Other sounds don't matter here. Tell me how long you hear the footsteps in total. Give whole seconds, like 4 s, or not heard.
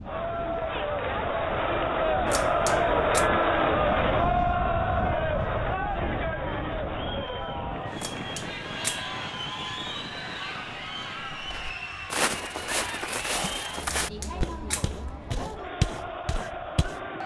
6 s.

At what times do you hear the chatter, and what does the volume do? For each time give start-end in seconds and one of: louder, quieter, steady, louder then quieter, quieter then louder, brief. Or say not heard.
0.0-17.2 quieter.